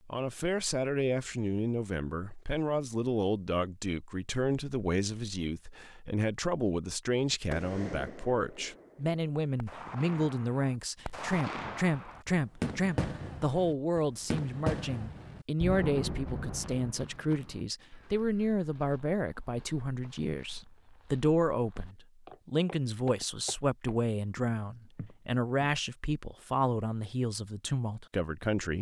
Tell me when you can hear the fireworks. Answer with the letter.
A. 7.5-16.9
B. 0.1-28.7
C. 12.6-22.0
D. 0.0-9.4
A.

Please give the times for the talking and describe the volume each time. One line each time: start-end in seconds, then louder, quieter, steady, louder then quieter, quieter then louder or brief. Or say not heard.
0.1-28.7 steady.